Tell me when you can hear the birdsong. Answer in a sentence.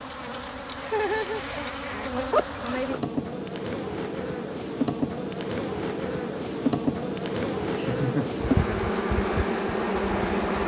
You can't hear the birdsong here.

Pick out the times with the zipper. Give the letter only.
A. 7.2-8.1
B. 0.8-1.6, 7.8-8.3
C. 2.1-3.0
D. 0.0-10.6
C.